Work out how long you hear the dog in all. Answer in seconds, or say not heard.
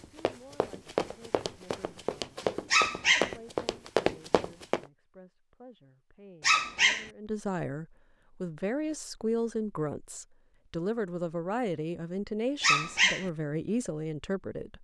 2 s.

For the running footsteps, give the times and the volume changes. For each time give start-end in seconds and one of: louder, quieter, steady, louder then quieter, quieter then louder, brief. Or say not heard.
0.0-4.8 quieter then louder.